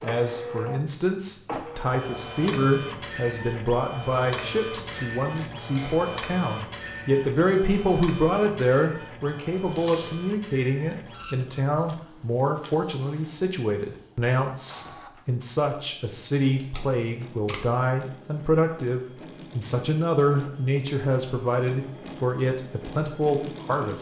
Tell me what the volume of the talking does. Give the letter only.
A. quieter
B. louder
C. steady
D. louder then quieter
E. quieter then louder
C.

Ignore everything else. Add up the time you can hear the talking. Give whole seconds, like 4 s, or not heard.
24 s.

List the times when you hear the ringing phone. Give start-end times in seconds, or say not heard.
not heard.